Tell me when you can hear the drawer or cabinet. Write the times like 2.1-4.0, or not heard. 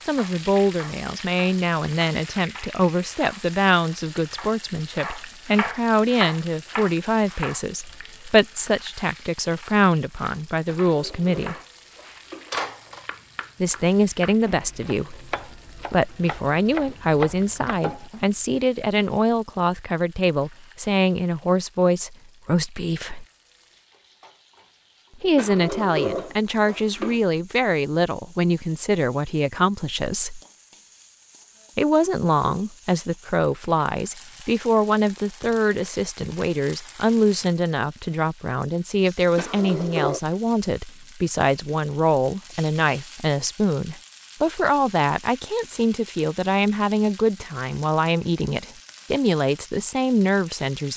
10.7-13.1, 25.4-27.2, 39.4-40.2.